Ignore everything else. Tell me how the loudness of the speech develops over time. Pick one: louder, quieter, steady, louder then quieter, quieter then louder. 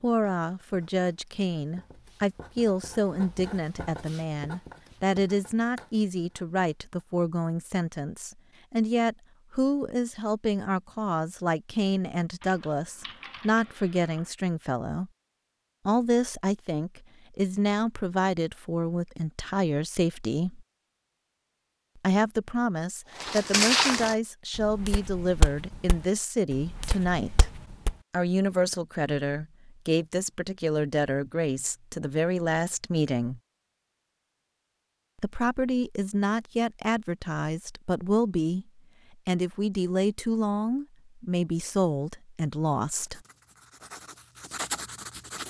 steady.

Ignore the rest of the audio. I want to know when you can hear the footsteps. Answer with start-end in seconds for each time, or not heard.
23.2-27.9.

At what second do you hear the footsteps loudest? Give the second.
24 s.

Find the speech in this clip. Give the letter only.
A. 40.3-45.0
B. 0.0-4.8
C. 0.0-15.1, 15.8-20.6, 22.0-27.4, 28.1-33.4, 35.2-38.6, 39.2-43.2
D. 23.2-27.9
C.